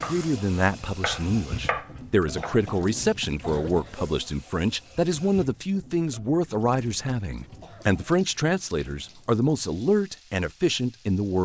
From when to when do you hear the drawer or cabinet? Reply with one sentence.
You can't hear the drawer or cabinet here.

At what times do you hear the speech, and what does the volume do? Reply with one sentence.
The speech can be heard from 0.1 to 11.3 s, at a steady volume.